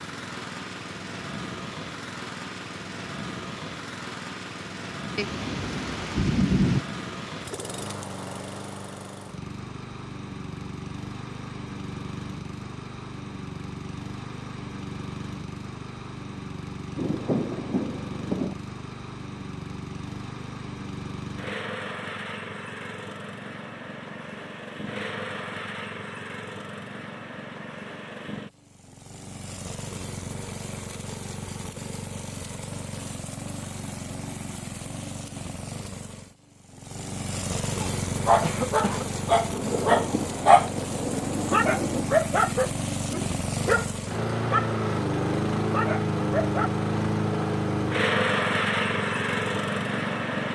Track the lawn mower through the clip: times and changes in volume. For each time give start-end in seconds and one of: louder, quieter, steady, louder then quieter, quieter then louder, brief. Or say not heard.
0.0-50.5 louder.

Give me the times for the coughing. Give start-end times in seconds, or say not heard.
38.4-39.0.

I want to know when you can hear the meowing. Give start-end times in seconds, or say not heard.
not heard.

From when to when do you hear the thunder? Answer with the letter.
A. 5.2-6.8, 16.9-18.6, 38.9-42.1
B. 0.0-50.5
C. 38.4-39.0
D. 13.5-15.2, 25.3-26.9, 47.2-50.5
A.